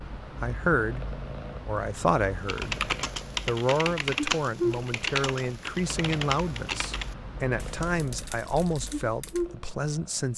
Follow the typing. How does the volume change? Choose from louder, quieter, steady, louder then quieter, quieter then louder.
quieter.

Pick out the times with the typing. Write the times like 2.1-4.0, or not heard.
2.5-9.5.